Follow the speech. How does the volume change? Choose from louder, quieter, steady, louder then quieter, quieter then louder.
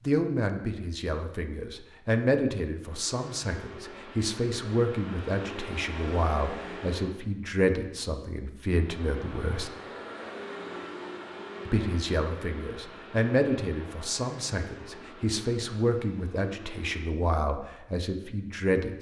steady.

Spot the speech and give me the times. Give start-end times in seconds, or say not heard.
0.1-9.7, 11.7-18.9.